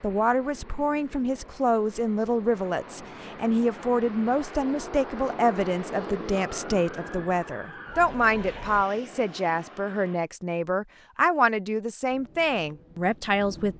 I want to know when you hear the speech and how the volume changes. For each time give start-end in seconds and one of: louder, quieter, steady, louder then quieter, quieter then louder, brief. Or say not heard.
0.0-13.7 steady.